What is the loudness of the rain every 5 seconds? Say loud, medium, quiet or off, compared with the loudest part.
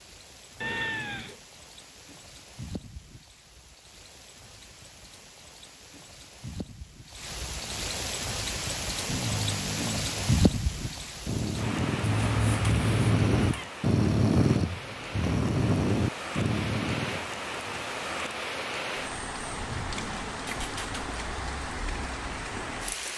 quiet, loud, loud, loud, loud.